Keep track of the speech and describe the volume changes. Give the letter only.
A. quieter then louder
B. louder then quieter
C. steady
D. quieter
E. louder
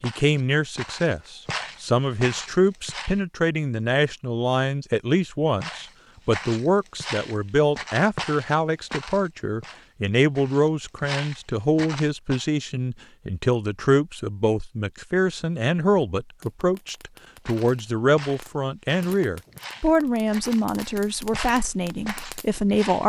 C.